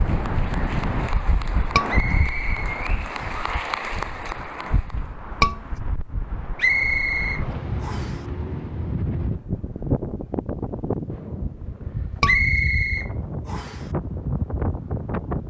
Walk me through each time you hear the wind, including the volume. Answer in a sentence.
You can hear the wind from 0.0 to 15.4 s, getting quieter then louder.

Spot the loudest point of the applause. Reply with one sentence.
The volume of the applause peaks at 4 seconds.